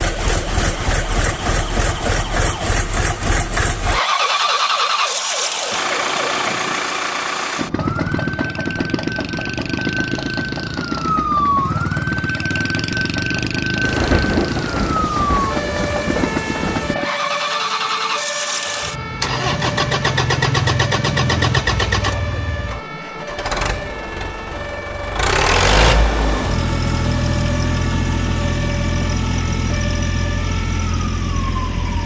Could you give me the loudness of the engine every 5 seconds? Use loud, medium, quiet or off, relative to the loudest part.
loud, loud, medium, loud, loud, loud, medium.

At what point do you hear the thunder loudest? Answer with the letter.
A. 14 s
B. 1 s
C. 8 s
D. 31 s
A.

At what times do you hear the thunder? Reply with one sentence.
The thunder can be heard from 13.8 to 16.9 s.